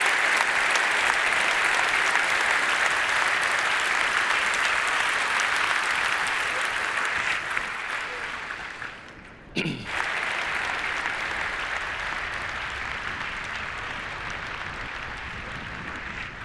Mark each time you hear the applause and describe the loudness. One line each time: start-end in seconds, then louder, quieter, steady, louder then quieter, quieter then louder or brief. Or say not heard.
0.0-16.4 quieter.